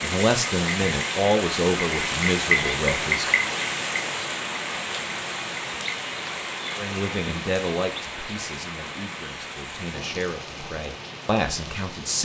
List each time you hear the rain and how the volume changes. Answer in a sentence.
You can hear the rain from 0.0 to 12.2 s, getting quieter.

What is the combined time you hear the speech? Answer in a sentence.
The speech can be heard for 9 seconds in total.